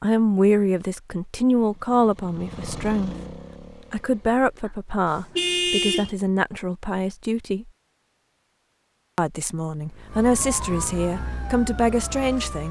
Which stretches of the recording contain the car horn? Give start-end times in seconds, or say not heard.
4.7-6.2.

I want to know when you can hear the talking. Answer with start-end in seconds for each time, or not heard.
0.0-3.1, 3.9-7.7, 9.2-12.6.